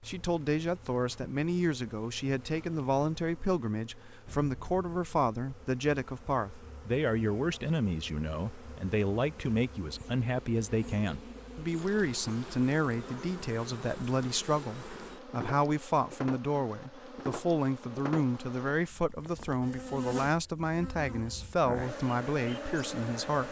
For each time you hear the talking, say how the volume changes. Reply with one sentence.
You can hear the talking from 0.1 to 23.4 s, at a steady volume.